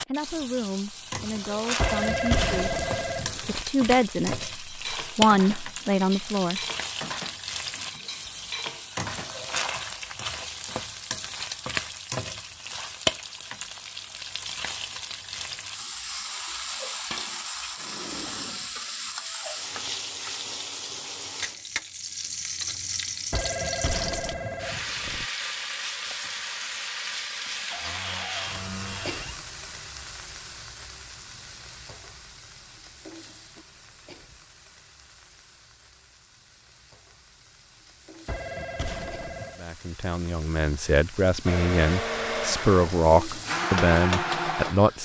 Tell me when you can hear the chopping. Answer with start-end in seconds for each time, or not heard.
not heard.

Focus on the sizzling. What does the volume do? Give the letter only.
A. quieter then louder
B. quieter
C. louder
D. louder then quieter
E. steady
B.